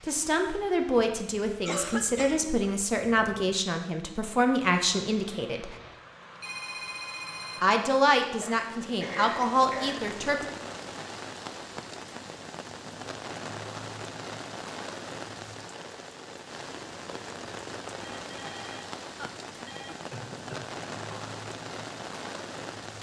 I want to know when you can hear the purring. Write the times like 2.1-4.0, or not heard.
not heard.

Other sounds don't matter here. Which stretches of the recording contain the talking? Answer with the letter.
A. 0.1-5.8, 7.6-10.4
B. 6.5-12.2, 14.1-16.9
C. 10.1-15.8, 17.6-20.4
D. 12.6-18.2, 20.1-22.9
A.